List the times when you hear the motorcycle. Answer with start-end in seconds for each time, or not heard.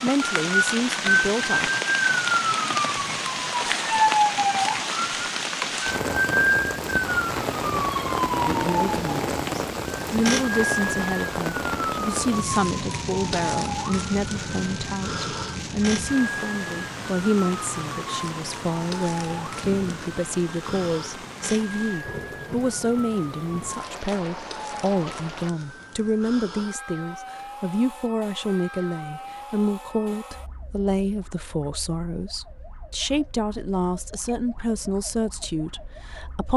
not heard.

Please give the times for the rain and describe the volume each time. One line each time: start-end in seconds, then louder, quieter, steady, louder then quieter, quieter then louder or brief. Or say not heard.
0.0-25.6 quieter.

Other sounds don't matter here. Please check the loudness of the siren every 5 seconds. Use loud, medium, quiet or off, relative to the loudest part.
loud, loud, medium, medium, quiet, quiet, quiet, quiet.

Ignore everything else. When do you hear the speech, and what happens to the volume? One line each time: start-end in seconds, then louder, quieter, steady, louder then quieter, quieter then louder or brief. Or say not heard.
0.0-1.7 brief
8.4-36.5 steady.